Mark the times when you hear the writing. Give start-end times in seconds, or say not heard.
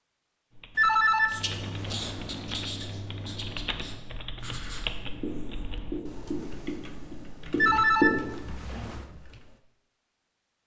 1.3-8.4.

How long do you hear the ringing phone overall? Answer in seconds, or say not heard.
3 s.